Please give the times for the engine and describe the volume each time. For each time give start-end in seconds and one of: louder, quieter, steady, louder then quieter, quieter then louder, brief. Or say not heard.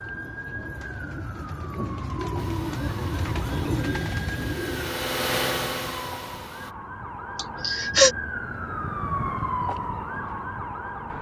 2.4-6.8 louder then quieter.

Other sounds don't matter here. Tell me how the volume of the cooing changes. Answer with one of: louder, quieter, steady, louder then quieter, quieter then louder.
louder.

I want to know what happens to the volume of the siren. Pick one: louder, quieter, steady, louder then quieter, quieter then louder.
louder.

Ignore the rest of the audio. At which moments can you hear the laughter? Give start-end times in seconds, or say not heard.
7.3-8.2.